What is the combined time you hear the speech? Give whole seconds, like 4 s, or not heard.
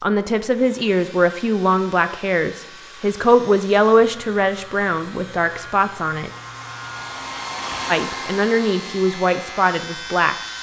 9 s.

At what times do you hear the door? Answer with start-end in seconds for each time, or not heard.
not heard.